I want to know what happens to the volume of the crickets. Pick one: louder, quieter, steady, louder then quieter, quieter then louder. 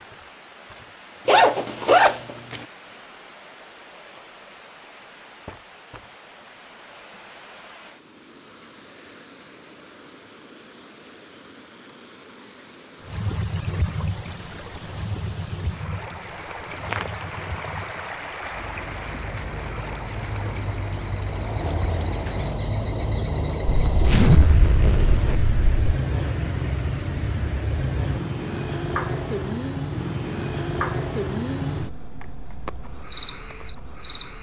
louder.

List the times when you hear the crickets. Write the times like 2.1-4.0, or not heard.
13.0-34.3.